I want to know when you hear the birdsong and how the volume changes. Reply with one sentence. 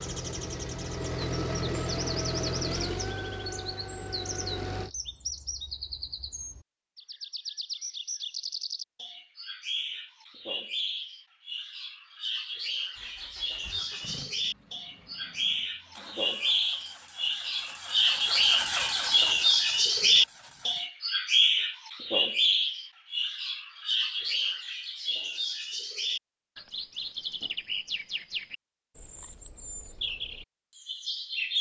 You can hear the birdsong from 0.0 to 31.5 s, getting louder then quieter.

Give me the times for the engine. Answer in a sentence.
You can hear the engine from 0.0 to 4.9 s and from 12.9 to 20.9 s.